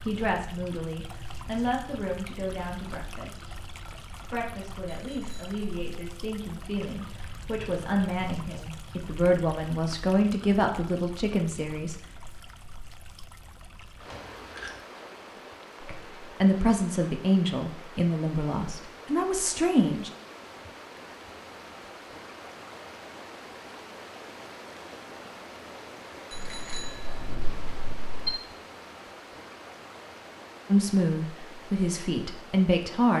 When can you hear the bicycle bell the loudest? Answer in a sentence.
The loudest moment of the bicycle bell is at 28 seconds.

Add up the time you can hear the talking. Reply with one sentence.
The talking can be heard for 19 seconds in total.